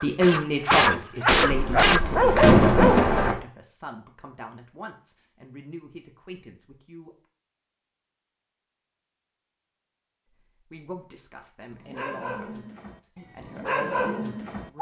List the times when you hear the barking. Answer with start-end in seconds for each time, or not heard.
0.0-3.0, 11.7-14.7.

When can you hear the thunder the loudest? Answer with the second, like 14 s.
3 s.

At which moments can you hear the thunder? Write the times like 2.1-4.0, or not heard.
1.3-3.4.